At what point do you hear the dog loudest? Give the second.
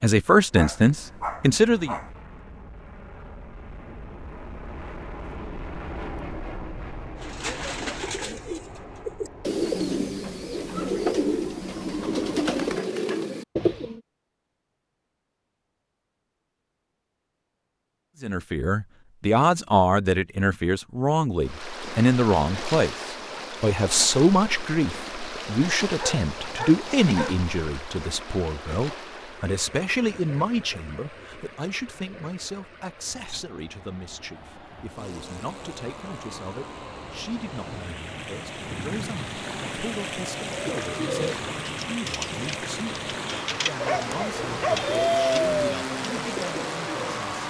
45 s.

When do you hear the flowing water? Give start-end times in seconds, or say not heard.
21.4-47.4.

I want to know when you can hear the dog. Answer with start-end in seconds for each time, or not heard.
0.6-2.1, 25.9-27.4, 43.8-45.8.